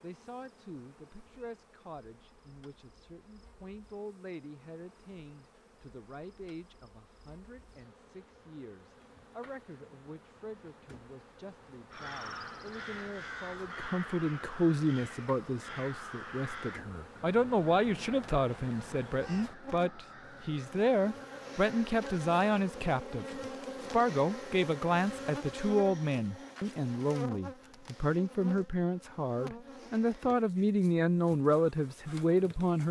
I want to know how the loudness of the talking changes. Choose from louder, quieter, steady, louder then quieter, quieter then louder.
louder.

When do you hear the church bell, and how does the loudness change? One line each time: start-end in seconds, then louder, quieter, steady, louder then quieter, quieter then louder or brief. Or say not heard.
not heard.